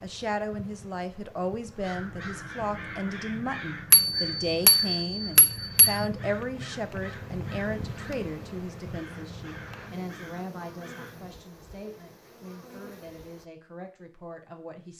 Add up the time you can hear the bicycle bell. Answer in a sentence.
The bicycle bell can be heard for 2 seconds in total.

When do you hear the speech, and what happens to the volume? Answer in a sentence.
You can hear the speech from 0.0 to 14.9 s, getting quieter.